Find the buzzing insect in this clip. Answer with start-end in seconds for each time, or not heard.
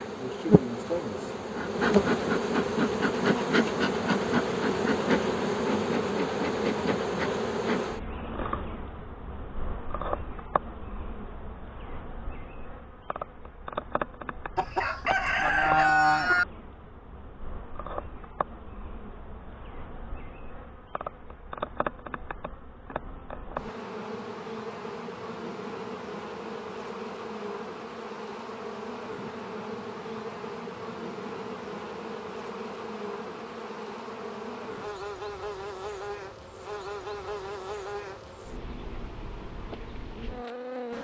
0.0-40.9.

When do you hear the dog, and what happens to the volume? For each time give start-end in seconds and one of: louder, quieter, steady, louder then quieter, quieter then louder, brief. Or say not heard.
not heard.